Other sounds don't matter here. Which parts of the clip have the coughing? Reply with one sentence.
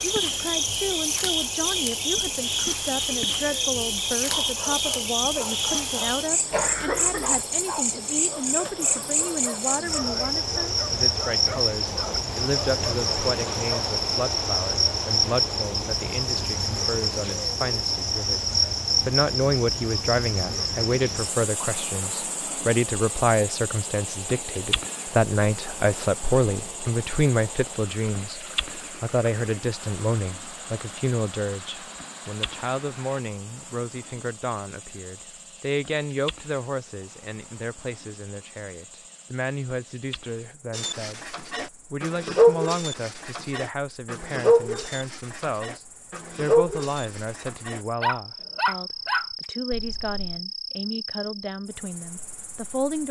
You can hear the coughing from 6.5 to 7.5 s.